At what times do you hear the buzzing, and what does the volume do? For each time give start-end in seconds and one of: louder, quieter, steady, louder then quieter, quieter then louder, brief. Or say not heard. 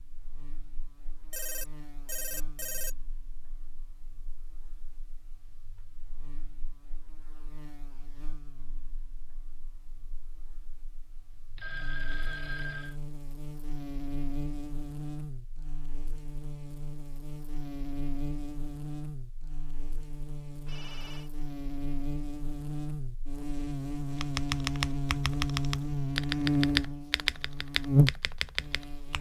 0.0-29.1 louder.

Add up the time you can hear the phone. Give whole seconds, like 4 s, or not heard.
4 s.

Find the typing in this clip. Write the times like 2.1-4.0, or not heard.
24.1-29.1.